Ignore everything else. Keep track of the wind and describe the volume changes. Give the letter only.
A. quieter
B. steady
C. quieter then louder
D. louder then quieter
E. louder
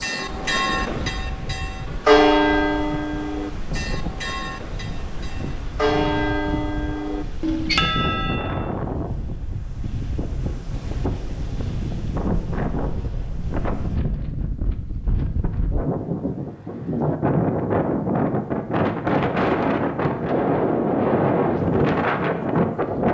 E.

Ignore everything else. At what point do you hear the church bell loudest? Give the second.
2 s.